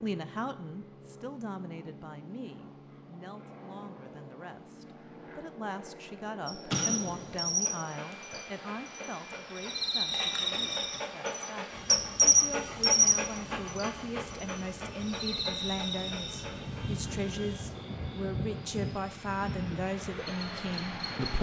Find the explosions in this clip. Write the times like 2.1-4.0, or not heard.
6.7-7.5.